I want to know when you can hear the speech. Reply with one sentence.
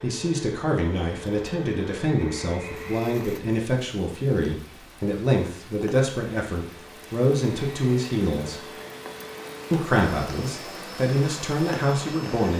You can hear the speech from 0.0 to 8.7 s and from 9.7 to 12.5 s.